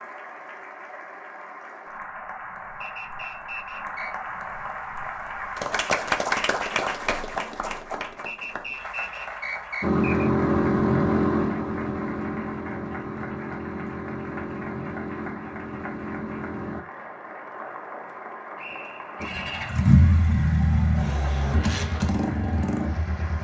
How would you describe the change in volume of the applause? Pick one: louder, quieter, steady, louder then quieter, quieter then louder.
louder then quieter.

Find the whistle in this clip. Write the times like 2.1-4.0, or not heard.
2.8-4.2, 8.2-10.3, 18.6-19.8.